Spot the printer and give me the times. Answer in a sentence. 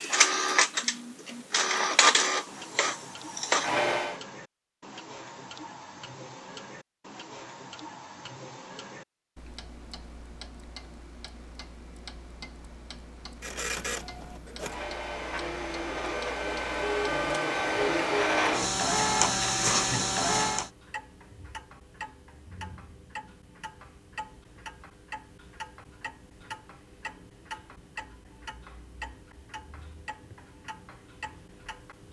The printer can be heard from 0.0 to 4.2 s and from 13.4 to 20.7 s.